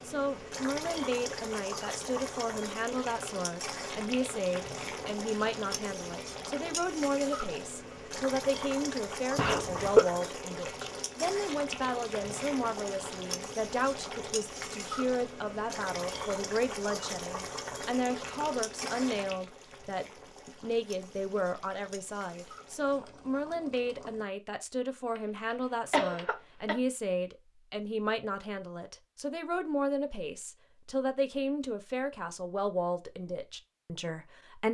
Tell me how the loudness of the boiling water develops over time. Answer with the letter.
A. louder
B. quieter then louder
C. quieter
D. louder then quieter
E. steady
C.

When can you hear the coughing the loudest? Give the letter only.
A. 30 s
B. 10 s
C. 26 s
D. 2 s
B.